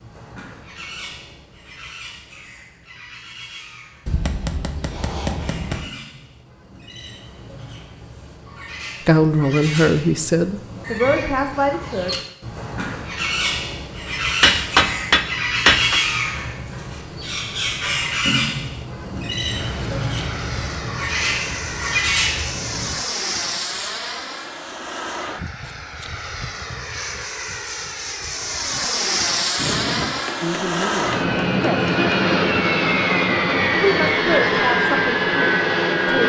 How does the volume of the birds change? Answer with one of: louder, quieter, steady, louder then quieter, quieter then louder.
louder.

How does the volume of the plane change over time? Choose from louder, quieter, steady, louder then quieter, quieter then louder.
louder.